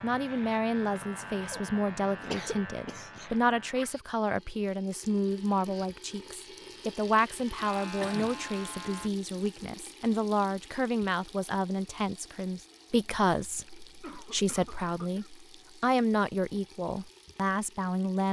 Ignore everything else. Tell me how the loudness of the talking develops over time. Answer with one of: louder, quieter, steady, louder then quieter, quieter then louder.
steady.